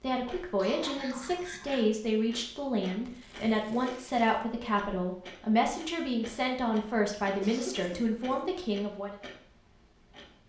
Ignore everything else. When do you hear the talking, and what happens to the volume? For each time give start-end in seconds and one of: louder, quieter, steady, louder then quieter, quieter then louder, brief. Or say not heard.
0.0-9.2 steady.